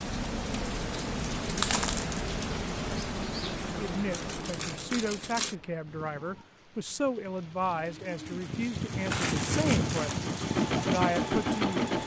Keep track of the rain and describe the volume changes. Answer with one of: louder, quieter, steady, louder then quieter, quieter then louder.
quieter then louder.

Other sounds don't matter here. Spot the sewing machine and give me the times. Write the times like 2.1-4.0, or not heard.
8.9-12.0.